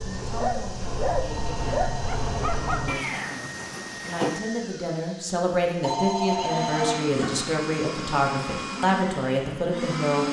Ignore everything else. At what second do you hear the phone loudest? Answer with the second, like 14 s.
6 s.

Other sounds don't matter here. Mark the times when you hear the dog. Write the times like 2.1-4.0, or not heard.
0.0-3.0.